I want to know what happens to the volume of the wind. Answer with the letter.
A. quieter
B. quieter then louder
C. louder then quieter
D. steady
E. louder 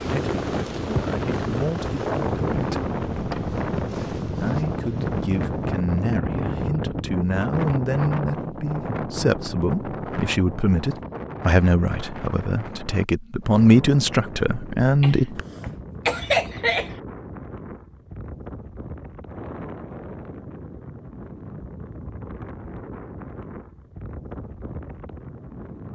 A.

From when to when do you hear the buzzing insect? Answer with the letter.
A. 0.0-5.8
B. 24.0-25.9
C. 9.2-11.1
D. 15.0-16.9
A.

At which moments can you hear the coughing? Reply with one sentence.
You can hear the coughing from 15.0 to 16.9 s.